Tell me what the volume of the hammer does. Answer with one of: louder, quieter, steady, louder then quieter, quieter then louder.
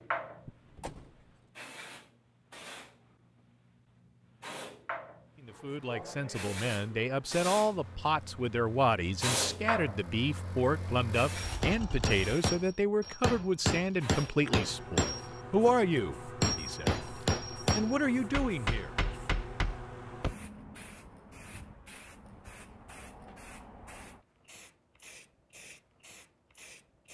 louder then quieter.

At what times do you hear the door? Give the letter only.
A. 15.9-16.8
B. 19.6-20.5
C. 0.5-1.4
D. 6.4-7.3
C.